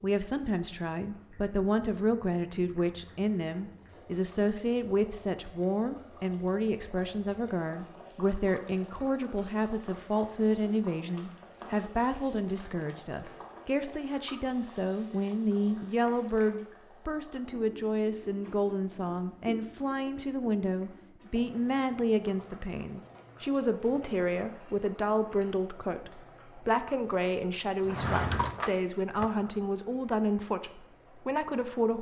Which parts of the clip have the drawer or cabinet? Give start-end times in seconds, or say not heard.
27.8-29.3.